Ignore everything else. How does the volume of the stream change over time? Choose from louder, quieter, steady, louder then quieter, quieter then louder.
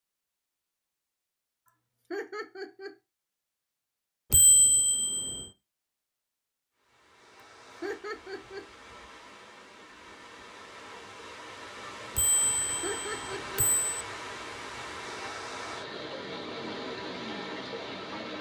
louder.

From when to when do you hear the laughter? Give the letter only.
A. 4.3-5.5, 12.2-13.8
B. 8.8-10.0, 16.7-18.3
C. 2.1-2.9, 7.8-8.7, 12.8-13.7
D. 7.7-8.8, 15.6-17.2
C.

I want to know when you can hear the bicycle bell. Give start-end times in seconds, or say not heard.
4.3-5.5, 12.2-13.8.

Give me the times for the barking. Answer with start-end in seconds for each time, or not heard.
not heard.